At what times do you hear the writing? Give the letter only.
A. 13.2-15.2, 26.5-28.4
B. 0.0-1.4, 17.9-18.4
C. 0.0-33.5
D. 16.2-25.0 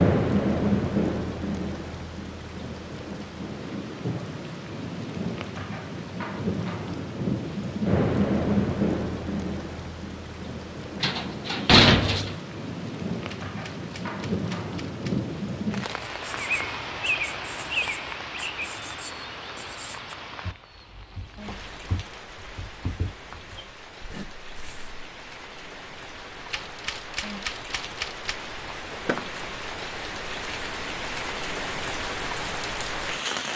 D.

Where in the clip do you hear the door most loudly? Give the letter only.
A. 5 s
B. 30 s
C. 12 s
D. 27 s
C.